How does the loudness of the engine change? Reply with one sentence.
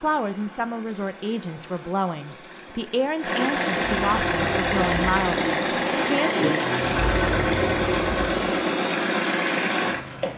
The volume of the engine goes up.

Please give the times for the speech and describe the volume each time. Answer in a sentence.
The speech can be heard from 0.0 to 6.3 s, at a steady volume.